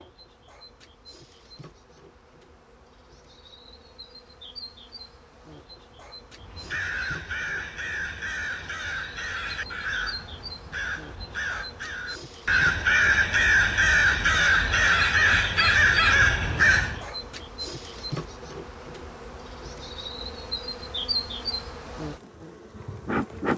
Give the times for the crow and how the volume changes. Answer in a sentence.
The crow can be heard from 6.3 to 17.1 s, getting louder.